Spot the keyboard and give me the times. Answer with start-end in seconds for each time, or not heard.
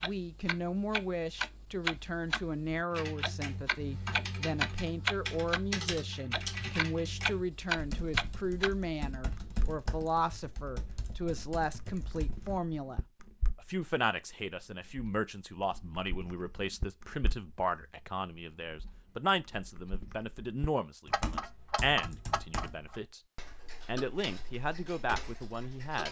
2.9-12.6, 21.1-23.1.